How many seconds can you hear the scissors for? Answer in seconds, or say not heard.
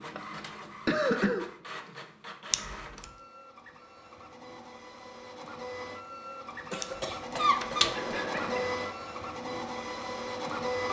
2 s.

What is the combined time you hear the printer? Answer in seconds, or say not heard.
11 s.